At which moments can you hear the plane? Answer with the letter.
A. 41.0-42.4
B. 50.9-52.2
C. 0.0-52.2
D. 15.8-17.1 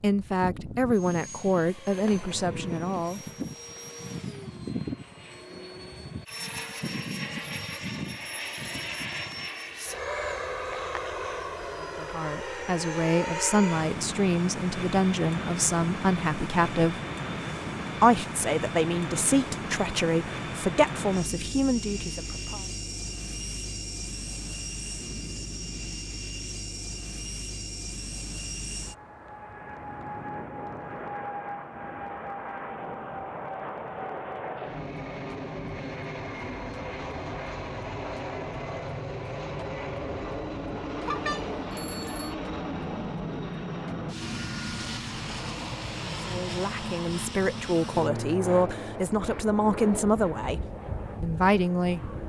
C.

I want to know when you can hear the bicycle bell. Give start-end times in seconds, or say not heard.
41.0-42.4.